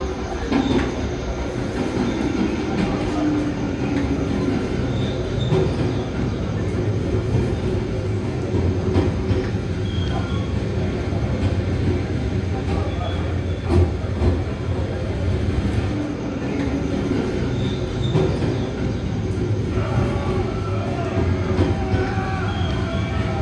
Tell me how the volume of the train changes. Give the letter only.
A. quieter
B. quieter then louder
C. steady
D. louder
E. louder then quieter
C.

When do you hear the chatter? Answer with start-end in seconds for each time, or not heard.
0.1-23.3.